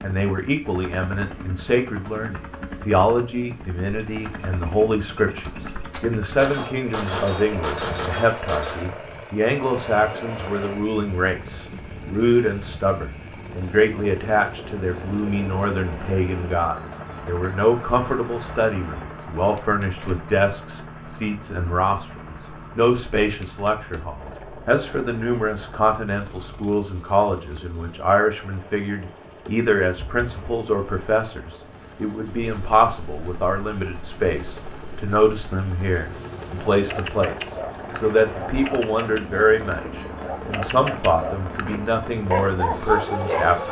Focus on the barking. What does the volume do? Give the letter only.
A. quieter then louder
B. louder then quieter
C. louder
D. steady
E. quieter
C.